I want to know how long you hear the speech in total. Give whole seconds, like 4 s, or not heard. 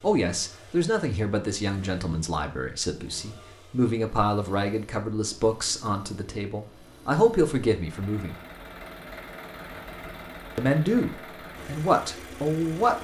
11 s.